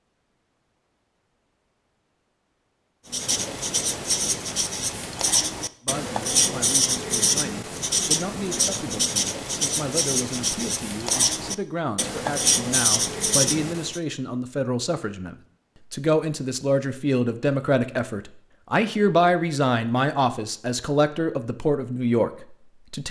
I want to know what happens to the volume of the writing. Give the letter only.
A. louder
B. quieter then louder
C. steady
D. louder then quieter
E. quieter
C.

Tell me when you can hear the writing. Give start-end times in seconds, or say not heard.
3.1-14.0.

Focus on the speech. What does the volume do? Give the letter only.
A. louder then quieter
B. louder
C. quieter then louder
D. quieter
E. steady
B.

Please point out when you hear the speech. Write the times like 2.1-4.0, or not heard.
5.8-23.0.